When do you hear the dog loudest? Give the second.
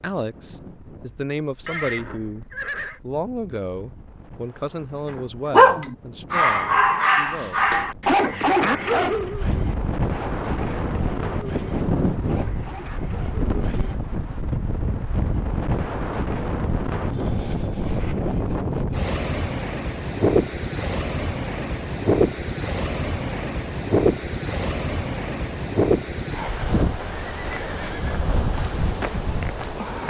6 s.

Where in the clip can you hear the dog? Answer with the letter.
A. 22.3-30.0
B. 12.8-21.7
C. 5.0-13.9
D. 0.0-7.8
C.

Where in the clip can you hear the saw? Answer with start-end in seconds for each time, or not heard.
not heard.